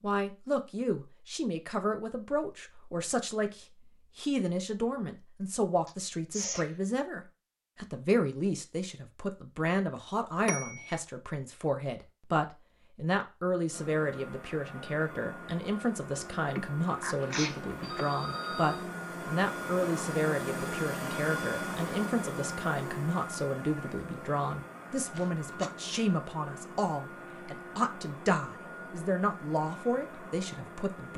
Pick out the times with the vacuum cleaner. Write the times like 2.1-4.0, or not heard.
13.7-31.1.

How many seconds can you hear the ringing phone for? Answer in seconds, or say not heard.
2 s.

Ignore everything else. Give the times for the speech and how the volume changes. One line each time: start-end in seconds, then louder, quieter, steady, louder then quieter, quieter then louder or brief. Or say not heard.
0.0-31.1 steady.